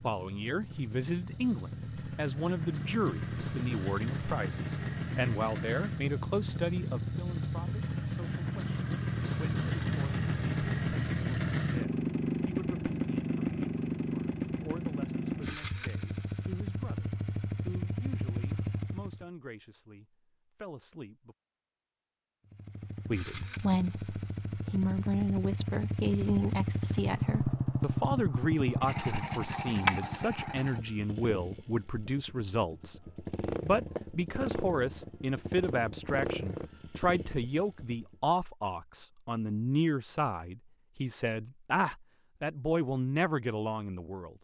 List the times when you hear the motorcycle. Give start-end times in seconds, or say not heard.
0.0-19.2, 22.4-38.2.